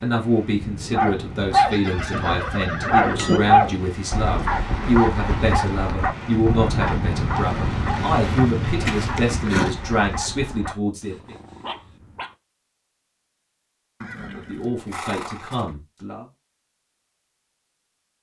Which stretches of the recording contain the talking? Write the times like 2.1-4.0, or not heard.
0.0-11.3, 14.2-16.2.